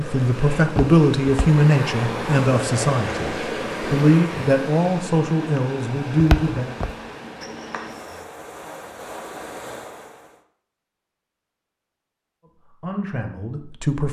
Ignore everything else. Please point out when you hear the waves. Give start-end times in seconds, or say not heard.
0.0-10.4.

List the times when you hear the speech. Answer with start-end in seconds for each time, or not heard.
0.0-6.8, 12.6-14.0.